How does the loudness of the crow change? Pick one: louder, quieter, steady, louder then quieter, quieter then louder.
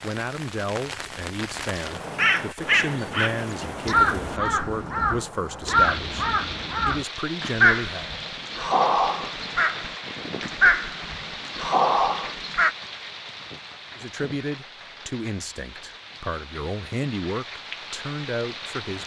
steady.